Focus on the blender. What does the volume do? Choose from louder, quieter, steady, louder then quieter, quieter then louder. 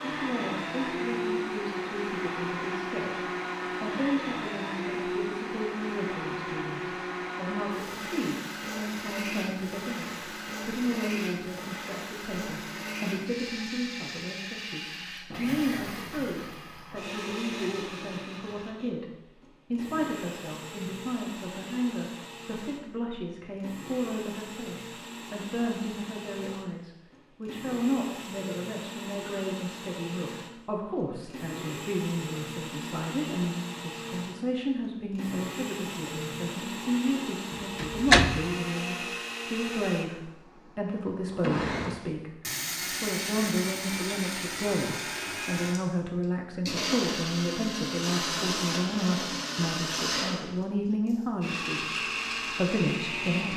quieter then louder.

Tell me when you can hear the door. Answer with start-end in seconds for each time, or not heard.
37.5-38.5.